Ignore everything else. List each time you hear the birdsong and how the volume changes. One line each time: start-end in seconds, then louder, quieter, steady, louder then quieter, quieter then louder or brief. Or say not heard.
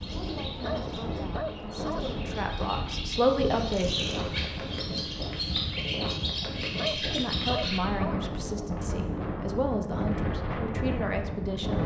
0.0-7.8 louder.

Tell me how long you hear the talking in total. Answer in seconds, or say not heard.
9 s.